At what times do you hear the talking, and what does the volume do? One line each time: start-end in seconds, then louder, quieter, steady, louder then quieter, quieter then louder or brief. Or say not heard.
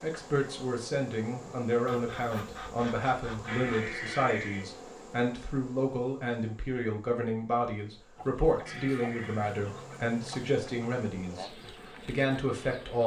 0.0-13.0 steady.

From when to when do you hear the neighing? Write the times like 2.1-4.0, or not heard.
3.5-4.7, 8.7-9.4.